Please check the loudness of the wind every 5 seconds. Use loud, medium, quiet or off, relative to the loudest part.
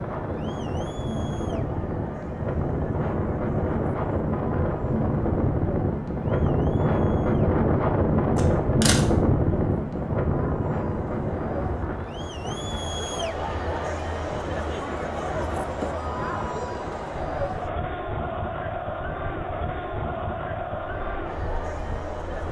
medium, loud, medium, quiet, quiet.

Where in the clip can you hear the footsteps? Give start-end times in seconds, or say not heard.
not heard.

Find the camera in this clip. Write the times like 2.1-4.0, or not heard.
8.3-9.1.